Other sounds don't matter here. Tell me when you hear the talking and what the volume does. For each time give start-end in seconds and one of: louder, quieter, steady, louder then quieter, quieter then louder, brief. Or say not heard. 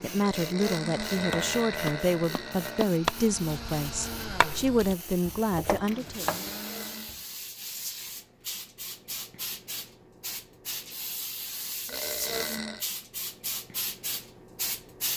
0.0-6.2 steady.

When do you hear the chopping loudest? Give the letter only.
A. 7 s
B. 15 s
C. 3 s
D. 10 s
C.